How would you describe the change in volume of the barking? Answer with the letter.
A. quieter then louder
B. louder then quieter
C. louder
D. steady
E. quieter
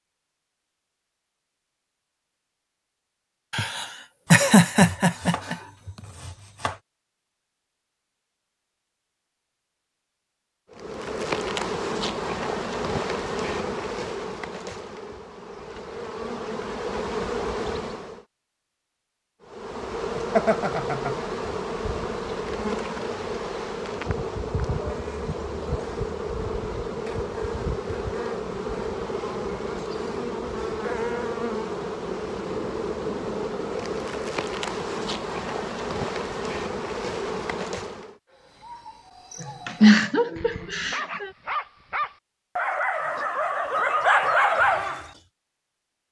C.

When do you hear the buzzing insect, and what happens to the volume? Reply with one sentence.
You can hear the buzzing insect from 10.7 to 18.2 s, getting quieter then louder; and from 19.4 to 38.1 s, at a steady volume.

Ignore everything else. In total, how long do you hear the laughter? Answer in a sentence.
The laughter can be heard for 5 seconds in total.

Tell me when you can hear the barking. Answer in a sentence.
The barking can be heard from 38.3 to 45.1 s.